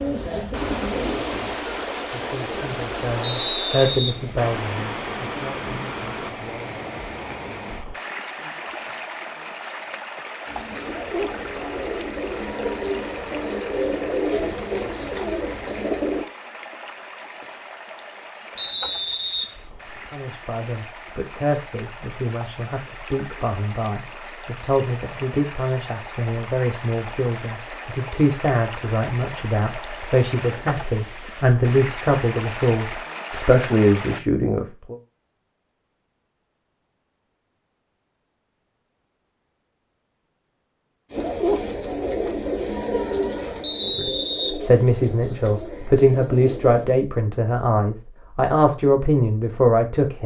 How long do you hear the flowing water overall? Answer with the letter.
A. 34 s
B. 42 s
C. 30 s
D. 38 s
A.